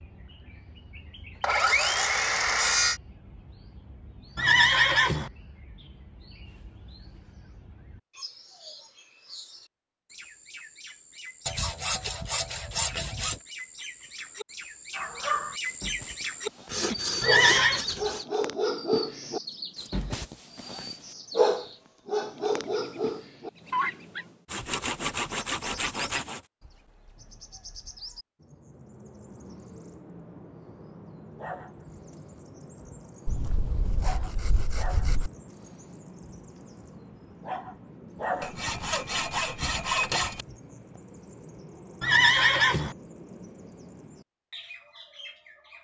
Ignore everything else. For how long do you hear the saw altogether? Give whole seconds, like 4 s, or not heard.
11 s.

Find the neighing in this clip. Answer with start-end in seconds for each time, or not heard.
4.3-5.3, 17.2-17.9, 42.0-43.0.